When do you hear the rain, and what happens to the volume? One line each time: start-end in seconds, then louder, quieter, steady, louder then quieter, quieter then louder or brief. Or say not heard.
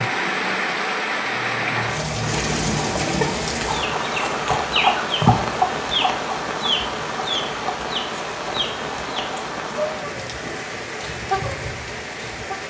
0.0-12.6 quieter.